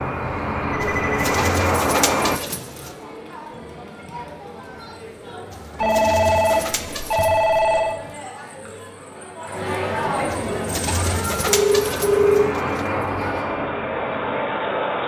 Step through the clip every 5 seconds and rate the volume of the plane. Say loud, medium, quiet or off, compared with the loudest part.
loud, off, medium.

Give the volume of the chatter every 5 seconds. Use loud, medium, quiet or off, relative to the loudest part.
medium, medium, loud.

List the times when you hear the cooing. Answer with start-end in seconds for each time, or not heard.
0.8-3.0, 5.5-7.7, 10.3-12.8.